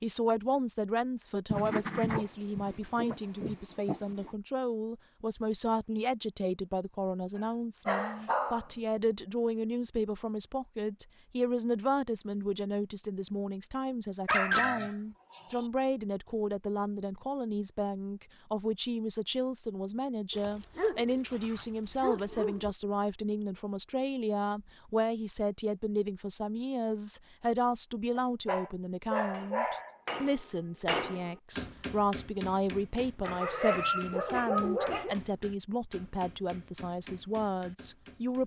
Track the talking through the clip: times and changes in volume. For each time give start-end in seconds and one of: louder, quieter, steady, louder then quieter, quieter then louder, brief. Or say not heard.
0.0-38.4 steady.